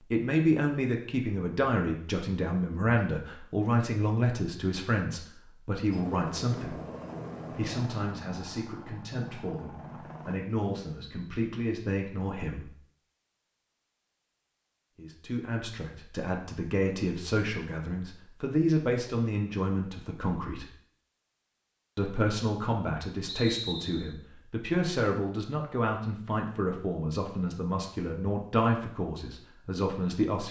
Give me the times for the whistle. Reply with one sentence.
You can hear the whistle from 23.2 to 24.1 s.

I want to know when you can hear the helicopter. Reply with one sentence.
The helicopter can be heard from 5.9 to 10.4 s.